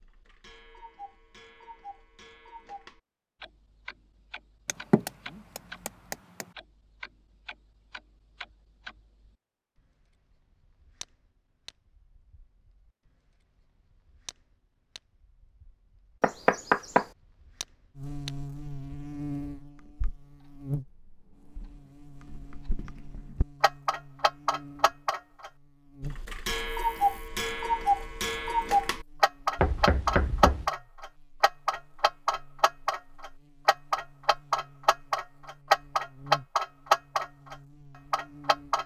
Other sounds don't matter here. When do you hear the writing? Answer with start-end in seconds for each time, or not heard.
not heard.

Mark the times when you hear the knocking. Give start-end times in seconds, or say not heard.
4.7-6.5, 16.2-17.1, 29.6-30.7.